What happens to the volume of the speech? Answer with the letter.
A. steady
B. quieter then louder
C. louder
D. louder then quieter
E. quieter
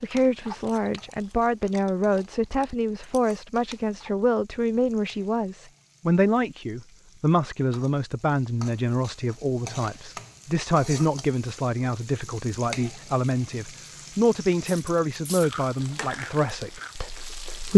A.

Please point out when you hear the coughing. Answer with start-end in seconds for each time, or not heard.
not heard.